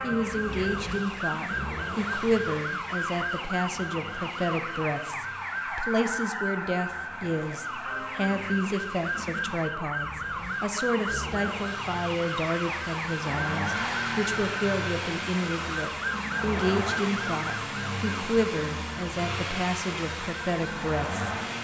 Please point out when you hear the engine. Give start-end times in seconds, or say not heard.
0.0-21.6.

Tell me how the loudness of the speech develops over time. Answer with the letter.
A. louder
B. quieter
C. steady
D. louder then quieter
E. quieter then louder
C.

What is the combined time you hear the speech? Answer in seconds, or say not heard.
21 s.